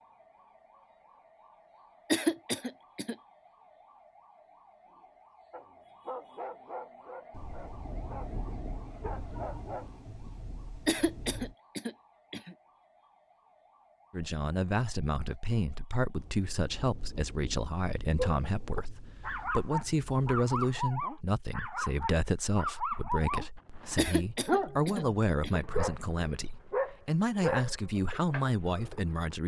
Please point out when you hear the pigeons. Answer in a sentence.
You can't hear the pigeons here.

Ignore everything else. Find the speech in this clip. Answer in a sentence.
The speech can be heard from 14.1 to 29.4 s.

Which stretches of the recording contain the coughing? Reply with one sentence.
The coughing can be heard from 2.1 to 3.1 s, from 10.8 to 12.6 s and from 23.9 to 25.6 s.